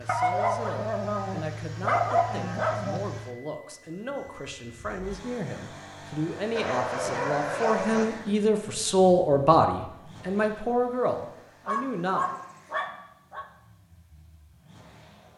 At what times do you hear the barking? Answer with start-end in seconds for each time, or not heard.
0.1-3.0, 6.5-8.1, 11.7-13.4.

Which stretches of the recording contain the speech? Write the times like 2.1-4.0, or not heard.
0.0-12.4.